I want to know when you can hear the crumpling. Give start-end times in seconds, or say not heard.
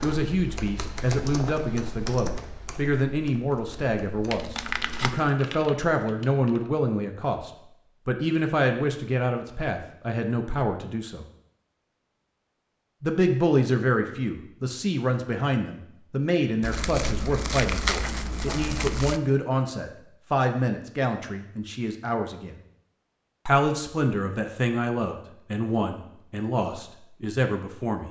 4.2-5.3, 16.6-19.2.